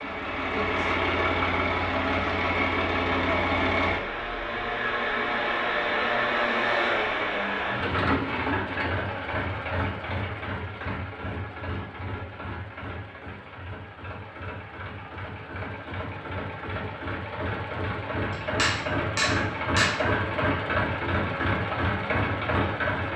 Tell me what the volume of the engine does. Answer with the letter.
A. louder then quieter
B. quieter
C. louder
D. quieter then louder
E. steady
D.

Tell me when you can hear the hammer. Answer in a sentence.
You can hear the hammer from 18.3 to 19.9 s.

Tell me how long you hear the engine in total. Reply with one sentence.
The engine can be heard for 23 seconds in total.